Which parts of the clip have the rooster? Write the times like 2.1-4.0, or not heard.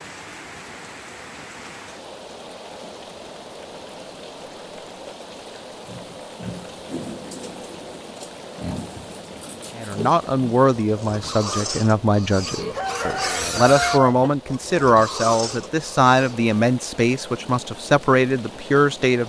12.8-14.3.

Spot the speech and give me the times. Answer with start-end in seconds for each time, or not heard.
9.8-19.2.